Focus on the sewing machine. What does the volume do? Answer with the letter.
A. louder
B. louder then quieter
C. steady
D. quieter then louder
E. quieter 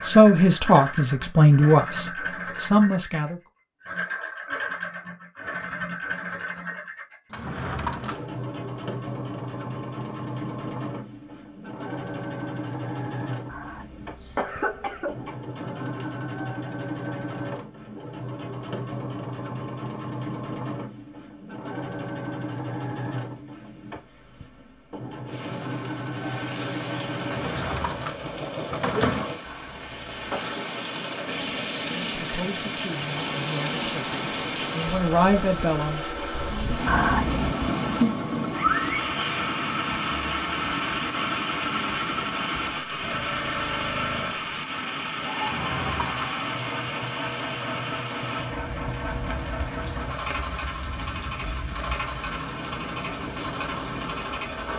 C.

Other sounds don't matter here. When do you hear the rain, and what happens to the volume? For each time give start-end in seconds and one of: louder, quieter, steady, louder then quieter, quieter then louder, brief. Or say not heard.
25.2-54.7 louder then quieter.